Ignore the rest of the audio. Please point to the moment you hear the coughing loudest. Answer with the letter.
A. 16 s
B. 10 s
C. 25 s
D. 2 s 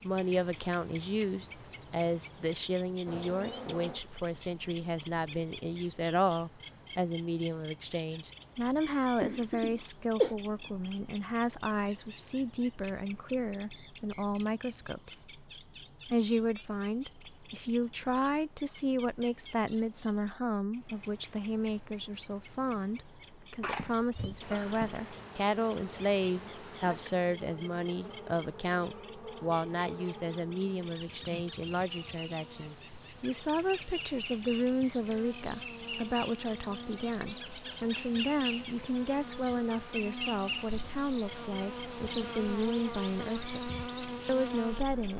B.